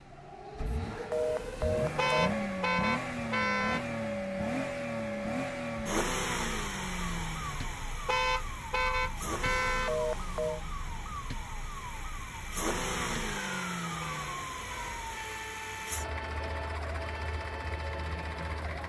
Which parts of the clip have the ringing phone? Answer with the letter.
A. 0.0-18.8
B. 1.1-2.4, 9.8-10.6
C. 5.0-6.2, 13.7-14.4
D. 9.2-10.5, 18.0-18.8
B.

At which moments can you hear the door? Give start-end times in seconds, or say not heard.
not heard.